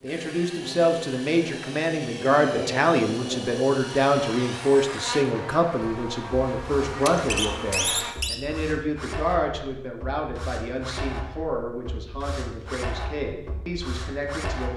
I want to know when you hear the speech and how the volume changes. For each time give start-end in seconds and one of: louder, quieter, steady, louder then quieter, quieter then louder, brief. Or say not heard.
0.0-14.7 quieter.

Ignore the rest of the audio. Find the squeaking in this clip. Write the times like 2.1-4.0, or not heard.
7.0-8.3.